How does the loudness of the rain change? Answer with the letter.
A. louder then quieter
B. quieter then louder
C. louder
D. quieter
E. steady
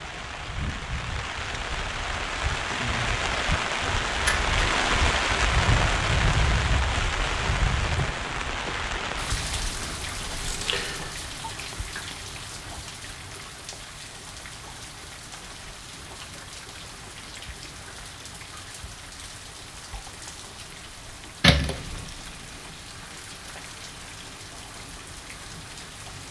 D.